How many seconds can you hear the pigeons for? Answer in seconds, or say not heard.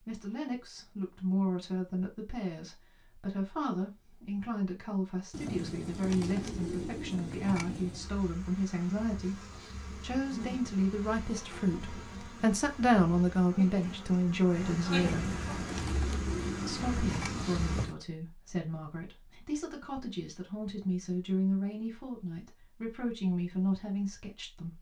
6 s.